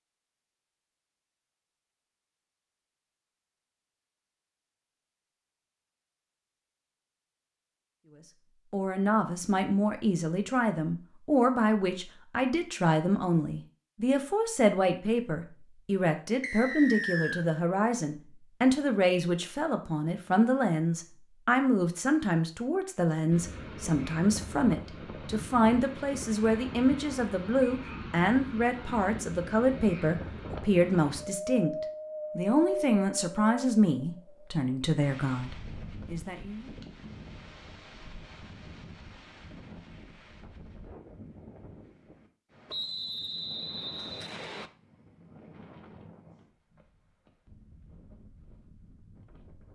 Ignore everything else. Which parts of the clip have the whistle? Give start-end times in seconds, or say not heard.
16.4-17.4, 42.6-44.7.